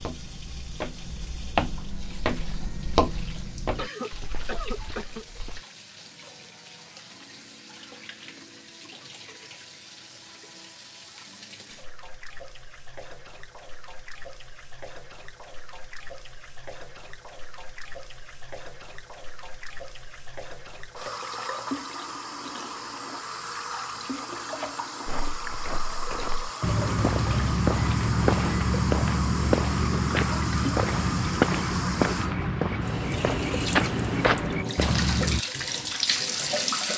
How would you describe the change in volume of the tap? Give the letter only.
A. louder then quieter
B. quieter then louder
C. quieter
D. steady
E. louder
E.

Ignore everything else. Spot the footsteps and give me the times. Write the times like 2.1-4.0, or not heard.
0.0-5.6, 25.1-35.4.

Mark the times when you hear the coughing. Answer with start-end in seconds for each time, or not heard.
3.8-5.2.